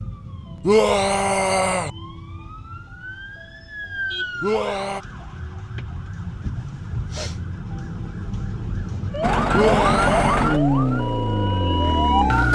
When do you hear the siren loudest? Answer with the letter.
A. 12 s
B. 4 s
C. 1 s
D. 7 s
A.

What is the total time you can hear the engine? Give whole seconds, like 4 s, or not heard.
3 s.